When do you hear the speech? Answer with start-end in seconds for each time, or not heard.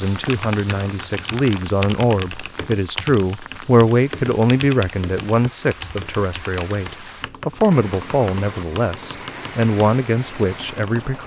0.0-11.2.